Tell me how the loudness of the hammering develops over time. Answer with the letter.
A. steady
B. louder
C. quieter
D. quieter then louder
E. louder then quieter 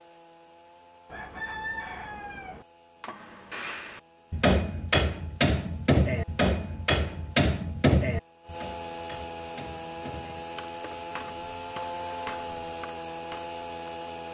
C.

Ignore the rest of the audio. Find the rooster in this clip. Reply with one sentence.
The rooster can be heard from 1.1 to 2.6 s.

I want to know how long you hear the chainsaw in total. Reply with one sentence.
You can hear the chainsaw for 14 seconds altogether.